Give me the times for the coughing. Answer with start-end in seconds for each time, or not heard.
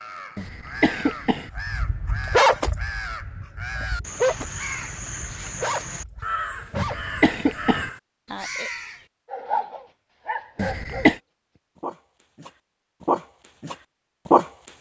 0.3-1.5, 6.8-7.9, 10.6-11.2.